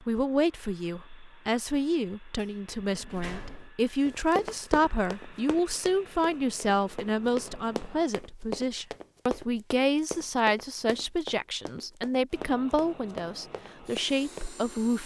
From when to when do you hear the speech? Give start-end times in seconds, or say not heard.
0.1-15.0.